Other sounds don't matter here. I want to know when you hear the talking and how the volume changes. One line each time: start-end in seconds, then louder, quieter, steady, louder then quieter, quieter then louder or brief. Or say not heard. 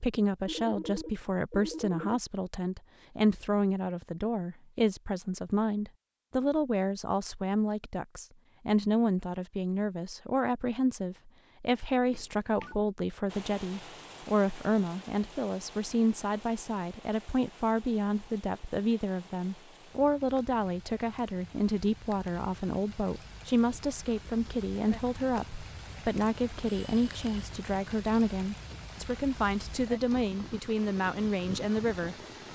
0.0-32.5 steady.